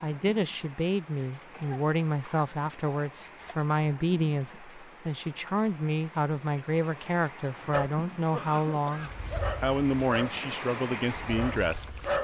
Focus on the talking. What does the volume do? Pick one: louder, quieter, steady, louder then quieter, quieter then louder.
steady.